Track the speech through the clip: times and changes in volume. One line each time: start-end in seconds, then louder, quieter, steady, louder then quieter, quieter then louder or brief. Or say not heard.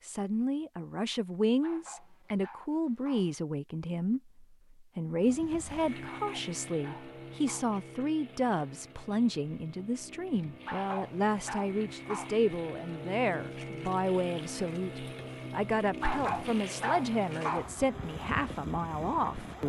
0.0-19.6 steady.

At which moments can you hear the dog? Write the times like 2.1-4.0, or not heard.
1.6-3.4, 6.0-7.8, 10.7-12.4, 16.0-17.7.